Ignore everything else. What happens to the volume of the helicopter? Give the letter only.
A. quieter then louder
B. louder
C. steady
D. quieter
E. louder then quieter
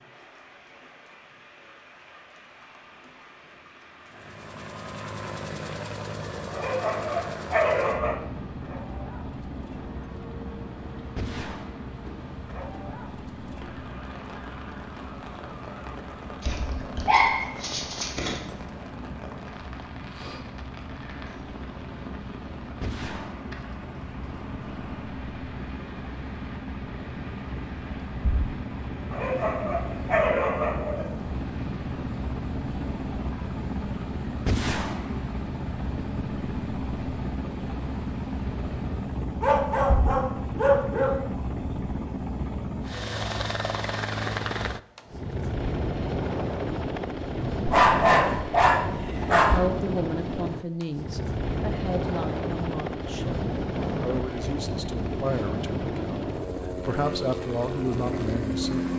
B.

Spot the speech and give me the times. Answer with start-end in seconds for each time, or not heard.
49.4-58.9.